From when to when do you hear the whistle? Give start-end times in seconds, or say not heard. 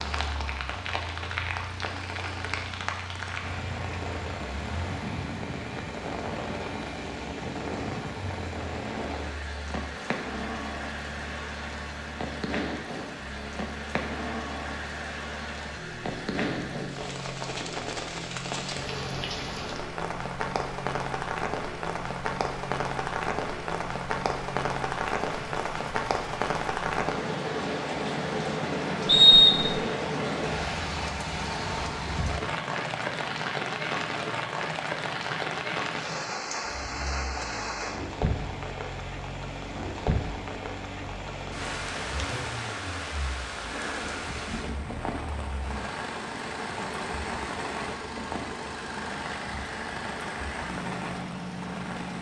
29.1-29.8.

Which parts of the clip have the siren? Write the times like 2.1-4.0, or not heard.
not heard.